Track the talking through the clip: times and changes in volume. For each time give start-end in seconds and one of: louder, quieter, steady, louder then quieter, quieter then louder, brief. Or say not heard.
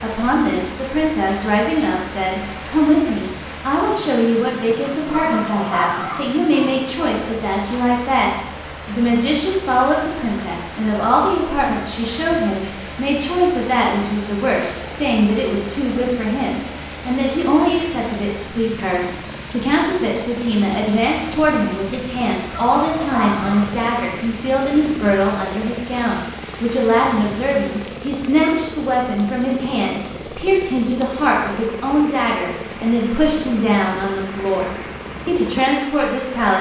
0.0-36.5 steady.